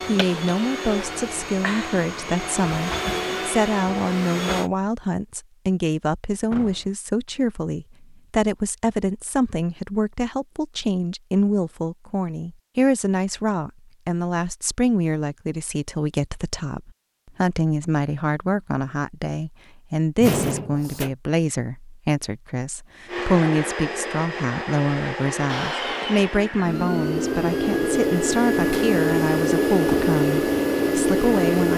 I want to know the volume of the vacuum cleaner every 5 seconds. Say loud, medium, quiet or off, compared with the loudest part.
medium, off, off, off, medium, loud, loud.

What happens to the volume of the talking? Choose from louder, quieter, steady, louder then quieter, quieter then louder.
steady.